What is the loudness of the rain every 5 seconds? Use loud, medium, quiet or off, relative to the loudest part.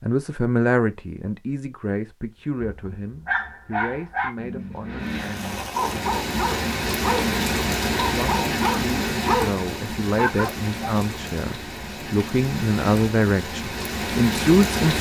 off, loud, loud.